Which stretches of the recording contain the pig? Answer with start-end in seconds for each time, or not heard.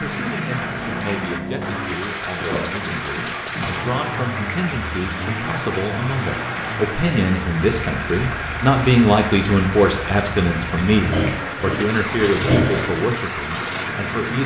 2.4-4.0, 11.0-12.9.